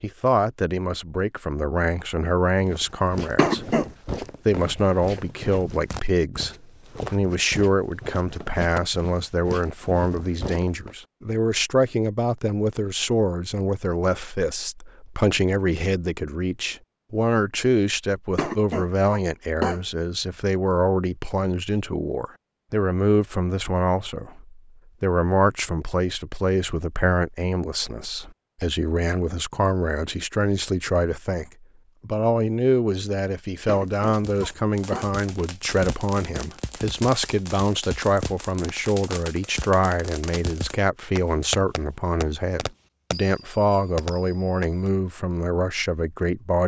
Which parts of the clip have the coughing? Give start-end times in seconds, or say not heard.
3.4-3.9, 18.4-19.8, 33.6-35.1.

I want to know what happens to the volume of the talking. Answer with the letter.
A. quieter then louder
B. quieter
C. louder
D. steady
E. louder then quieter
D.